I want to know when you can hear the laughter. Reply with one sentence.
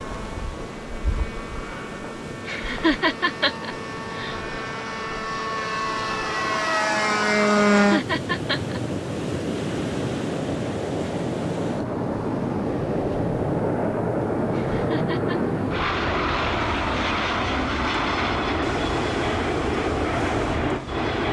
The laughter can be heard from 2.5 to 4.4 s, from 7.8 to 8.8 s and from 14.5 to 15.4 s.